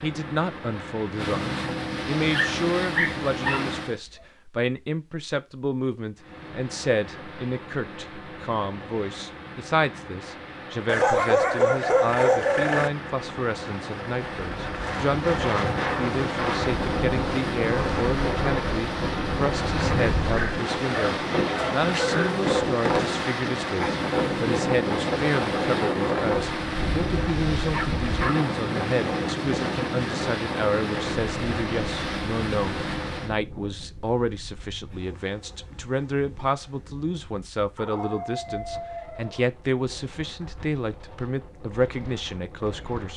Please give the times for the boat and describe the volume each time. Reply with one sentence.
The boat can be heard from 0.0 to 4.0 s, getting louder; and from 6.2 to 33.4 s, getting louder.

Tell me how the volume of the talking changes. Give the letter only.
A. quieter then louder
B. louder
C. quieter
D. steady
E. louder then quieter
D.